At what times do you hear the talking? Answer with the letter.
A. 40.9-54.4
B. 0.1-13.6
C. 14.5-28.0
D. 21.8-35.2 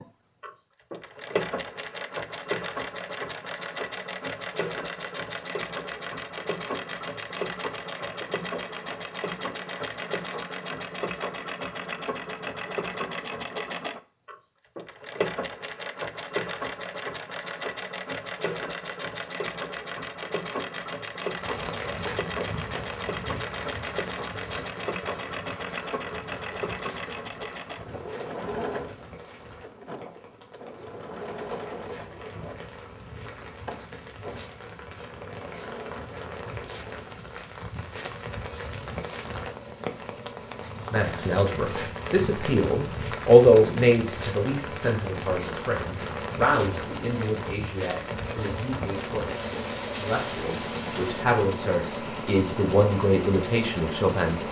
A.